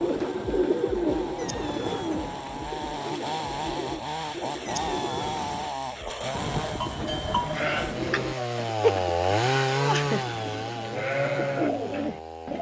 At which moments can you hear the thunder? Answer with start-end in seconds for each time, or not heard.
6.3-8.3.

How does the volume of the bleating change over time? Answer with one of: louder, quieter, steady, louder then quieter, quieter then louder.
quieter then louder.